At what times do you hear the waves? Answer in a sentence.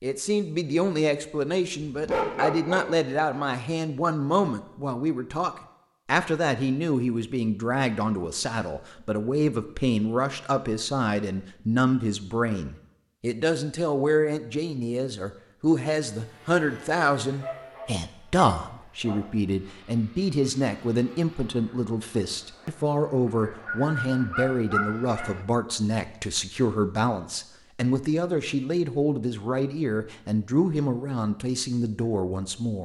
The waves can't be heard in this clip.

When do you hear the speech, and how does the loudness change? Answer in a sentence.
The speech can be heard from 0.0 to 32.8 s, at a steady volume.